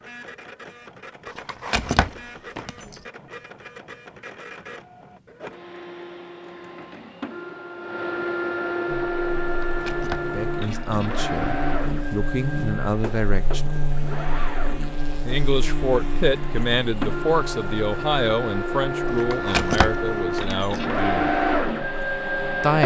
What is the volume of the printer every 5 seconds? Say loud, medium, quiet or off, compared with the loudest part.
quiet, medium, medium, medium, loud.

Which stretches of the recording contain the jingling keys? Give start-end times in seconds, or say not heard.
1.2-3.0, 9.4-10.3, 19.1-20.8.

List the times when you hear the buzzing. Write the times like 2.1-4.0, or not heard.
8.8-22.6.